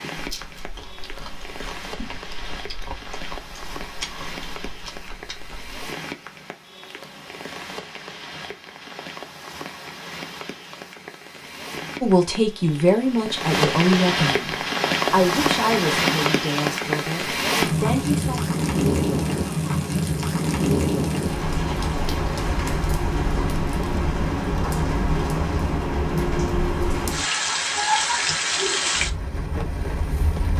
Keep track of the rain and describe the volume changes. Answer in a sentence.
The loudness of the rain goes up.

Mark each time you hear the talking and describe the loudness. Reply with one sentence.
You can hear the talking from 12.0 to 18.4 s, getting quieter.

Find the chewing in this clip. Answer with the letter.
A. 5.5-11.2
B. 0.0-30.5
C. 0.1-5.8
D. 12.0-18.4
C.